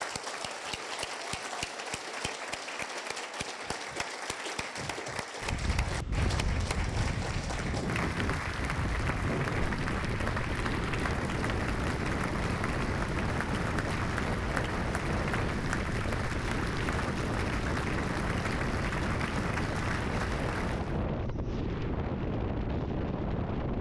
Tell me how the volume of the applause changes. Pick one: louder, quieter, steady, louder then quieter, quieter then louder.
steady.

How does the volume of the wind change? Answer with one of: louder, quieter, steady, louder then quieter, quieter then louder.
steady.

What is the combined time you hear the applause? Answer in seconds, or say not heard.
21 s.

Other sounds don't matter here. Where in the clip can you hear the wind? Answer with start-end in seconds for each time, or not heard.
5.4-23.7.